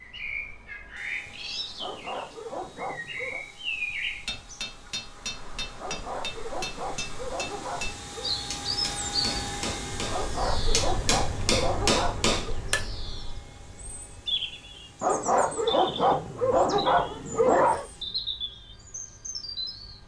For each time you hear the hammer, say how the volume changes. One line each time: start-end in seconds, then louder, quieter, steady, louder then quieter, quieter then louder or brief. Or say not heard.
4.2-12.8 louder.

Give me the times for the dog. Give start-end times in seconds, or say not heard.
1.8-3.5, 5.8-8.3, 10.1-12.3, 15.0-17.9.